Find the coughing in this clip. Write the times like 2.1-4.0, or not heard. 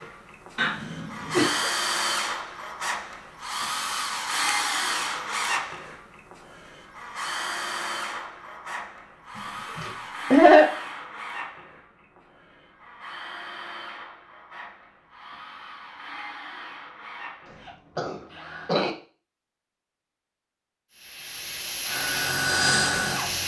0.6-1.7, 9.8-10.7, 17.9-18.9.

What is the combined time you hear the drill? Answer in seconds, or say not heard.
20 s.